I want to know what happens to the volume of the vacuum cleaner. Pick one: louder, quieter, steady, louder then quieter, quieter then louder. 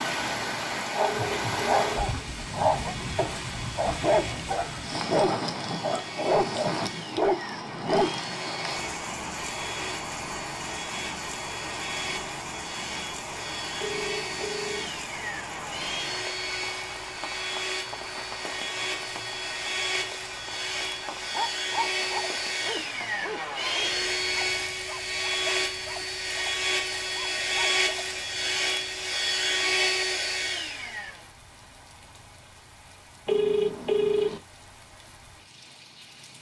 louder.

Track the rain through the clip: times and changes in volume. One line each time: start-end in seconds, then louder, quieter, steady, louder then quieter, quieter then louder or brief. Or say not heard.
0.0-36.3 quieter.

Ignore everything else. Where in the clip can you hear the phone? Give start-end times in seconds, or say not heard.
0.9-1.9, 13.8-14.9, 33.2-34.4.